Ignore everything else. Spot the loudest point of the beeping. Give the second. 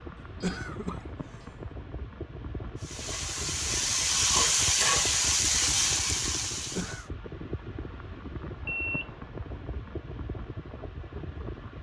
9 s.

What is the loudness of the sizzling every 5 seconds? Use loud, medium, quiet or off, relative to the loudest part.
loud, loud, off.